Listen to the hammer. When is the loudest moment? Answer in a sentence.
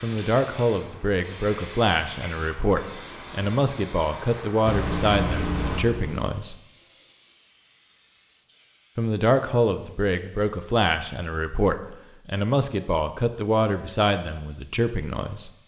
The volume of the hammer peaks at 5 seconds.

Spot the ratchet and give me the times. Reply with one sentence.
You can't hear the ratchet here.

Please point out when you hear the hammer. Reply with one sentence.
The hammer can be heard from 4.7 to 6.3 s.